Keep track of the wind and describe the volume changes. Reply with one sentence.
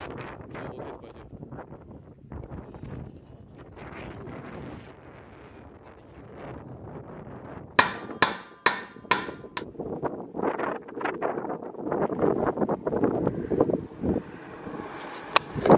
The volume of the wind goes up.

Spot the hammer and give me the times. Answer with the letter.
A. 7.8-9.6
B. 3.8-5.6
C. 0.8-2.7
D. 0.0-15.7
A.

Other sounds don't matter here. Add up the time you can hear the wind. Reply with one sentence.
You can hear the wind for 16 seconds altogether.